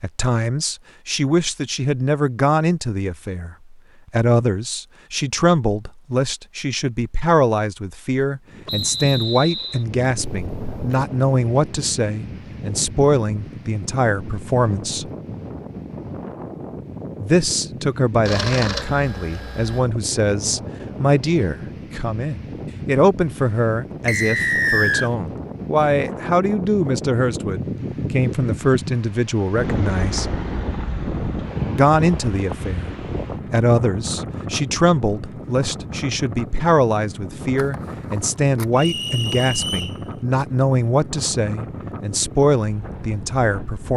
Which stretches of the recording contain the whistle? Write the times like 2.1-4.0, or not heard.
8.7-9.8, 24.1-25.1, 38.8-40.0.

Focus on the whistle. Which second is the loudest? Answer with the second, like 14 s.
25 s.